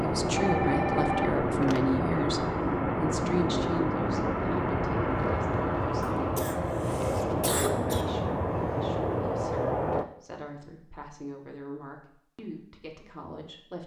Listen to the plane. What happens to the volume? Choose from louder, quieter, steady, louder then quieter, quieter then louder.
steady.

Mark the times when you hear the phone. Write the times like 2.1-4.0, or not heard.
0.3-1.9.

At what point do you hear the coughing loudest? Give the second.
8 s.